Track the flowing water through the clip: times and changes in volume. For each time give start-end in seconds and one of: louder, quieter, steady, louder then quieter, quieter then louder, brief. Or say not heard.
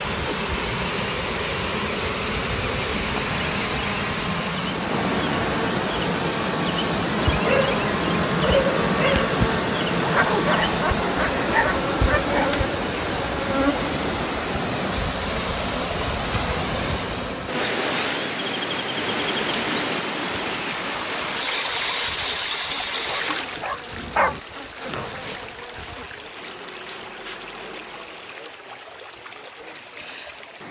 0.0-30.6 quieter.